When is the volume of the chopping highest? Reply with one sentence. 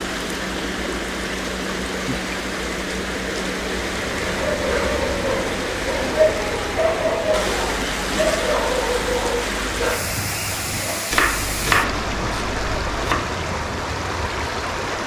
The loudest moment of the chopping is at 12 seconds.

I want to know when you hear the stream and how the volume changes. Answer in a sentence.
The stream can be heard from 0.0 to 15.0 s, at a steady volume.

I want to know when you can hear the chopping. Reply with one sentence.
You can hear the chopping from 11.1 to 13.3 s.